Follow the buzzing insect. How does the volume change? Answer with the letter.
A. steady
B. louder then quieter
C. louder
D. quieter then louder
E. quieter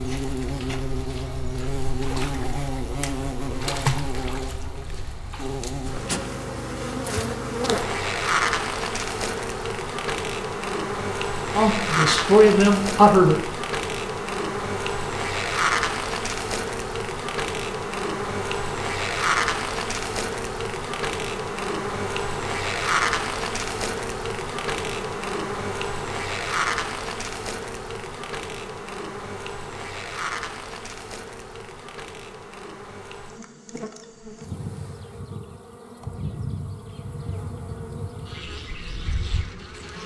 E.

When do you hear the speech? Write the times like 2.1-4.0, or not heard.
11.6-13.4.